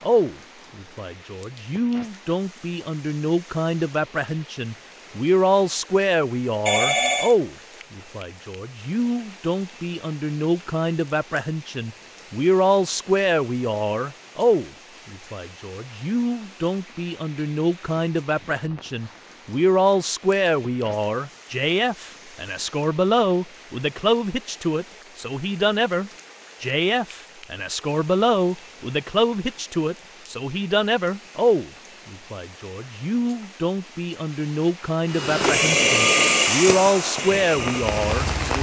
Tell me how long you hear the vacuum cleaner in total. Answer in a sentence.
You can hear the vacuum cleaner for 3 seconds altogether.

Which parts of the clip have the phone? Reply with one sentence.
You can hear the phone from 6.7 to 7.3 s.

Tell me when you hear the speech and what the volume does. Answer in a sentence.
You can hear the speech from 0.0 to 38.5 s, at a steady volume.